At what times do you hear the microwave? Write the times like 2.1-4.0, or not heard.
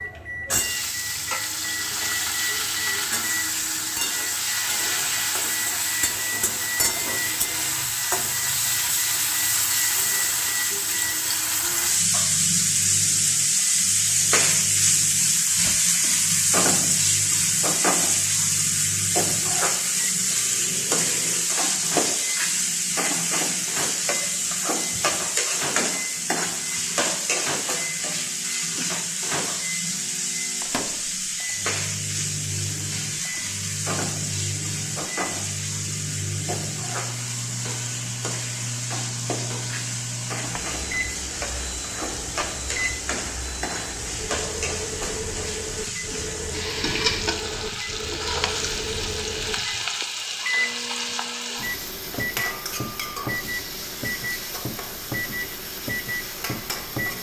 0.0-57.1.